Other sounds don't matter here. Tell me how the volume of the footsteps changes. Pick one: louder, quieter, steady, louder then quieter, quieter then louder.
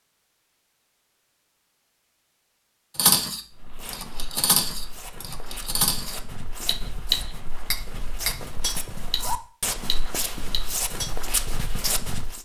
louder.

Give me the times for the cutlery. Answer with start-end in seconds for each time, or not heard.
3.0-11.1.